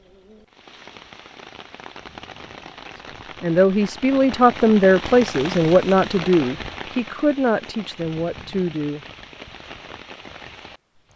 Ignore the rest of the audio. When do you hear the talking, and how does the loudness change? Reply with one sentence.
The talking can be heard from 3.4 to 9.0 s, getting quieter.